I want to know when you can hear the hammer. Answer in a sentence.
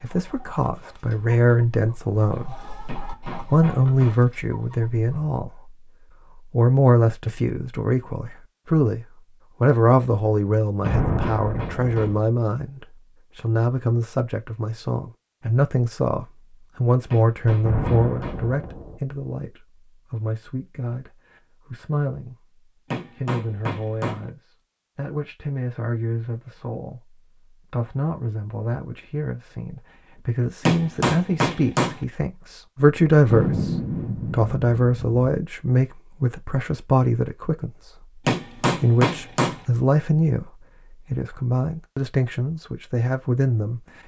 You can hear the hammer from 2.9 to 4.2 s, from 10.8 to 12.2 s, from 17.1 to 18.4 s, from 22.9 to 24.2 s, from 30.6 to 32.0 s and from 38.2 to 39.6 s.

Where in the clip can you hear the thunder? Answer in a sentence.
The thunder can be heard from 10.8 to 12.0 s, from 17.6 to 18.9 s and from 33.3 to 35.2 s.